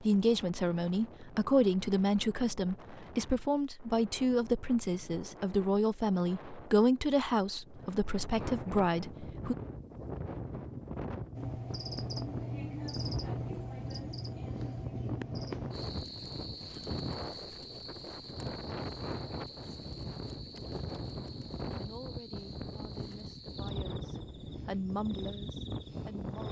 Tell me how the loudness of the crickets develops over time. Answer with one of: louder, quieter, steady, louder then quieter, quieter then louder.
quieter.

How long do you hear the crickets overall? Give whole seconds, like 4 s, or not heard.
15 s.